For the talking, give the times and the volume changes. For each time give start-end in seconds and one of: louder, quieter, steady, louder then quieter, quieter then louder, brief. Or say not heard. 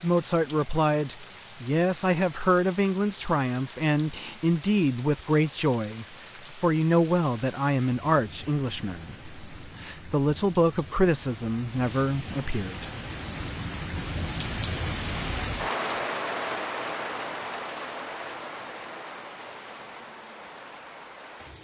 0.0-12.8 steady.